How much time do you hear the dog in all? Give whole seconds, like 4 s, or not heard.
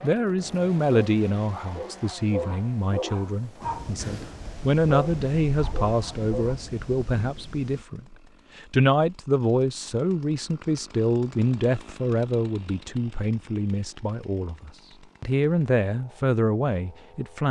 6 s.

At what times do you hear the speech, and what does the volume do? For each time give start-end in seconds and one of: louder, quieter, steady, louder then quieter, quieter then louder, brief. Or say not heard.
0.0-17.4 steady.